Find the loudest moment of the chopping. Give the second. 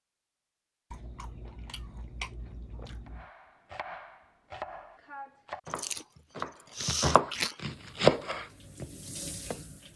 8 s.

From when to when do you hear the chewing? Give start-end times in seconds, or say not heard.
0.9-3.3, 5.7-7.5.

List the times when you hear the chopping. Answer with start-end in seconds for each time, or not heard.
3.0-9.6.